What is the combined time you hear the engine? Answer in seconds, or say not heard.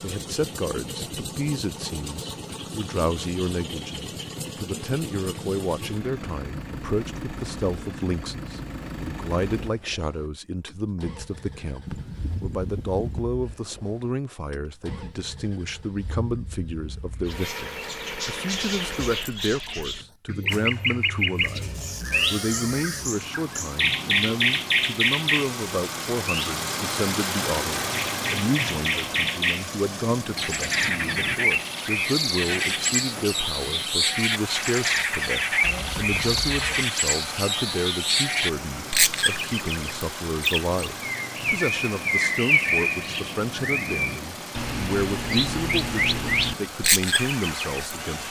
48 s.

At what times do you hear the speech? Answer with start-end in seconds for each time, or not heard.
0.0-48.2.